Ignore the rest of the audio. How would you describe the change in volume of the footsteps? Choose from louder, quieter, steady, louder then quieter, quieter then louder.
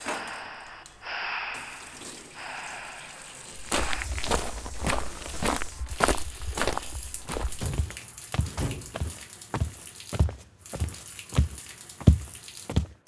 quieter then louder.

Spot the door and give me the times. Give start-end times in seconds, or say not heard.
7.5-9.0.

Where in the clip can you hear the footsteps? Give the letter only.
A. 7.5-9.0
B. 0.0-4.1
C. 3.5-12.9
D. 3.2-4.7
C.